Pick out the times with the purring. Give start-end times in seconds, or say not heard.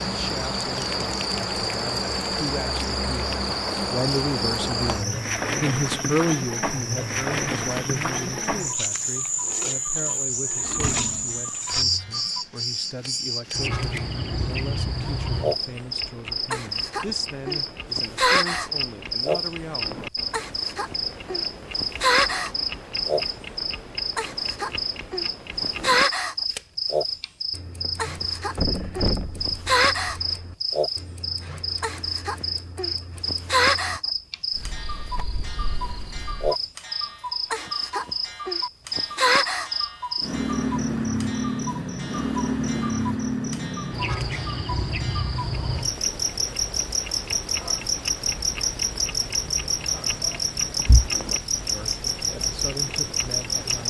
not heard.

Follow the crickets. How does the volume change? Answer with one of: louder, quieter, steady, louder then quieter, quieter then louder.
steady.